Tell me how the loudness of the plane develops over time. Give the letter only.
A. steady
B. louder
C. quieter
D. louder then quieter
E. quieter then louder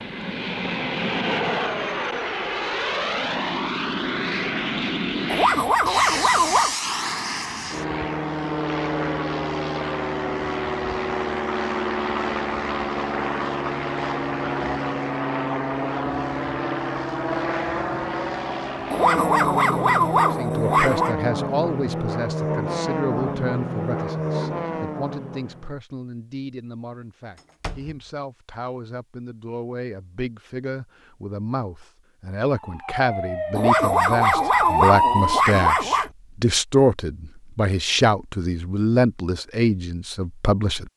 A.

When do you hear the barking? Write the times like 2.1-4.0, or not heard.
5.2-6.8, 18.9-21.1, 33.5-36.1.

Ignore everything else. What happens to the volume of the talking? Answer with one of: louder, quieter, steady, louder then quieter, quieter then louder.
quieter then louder.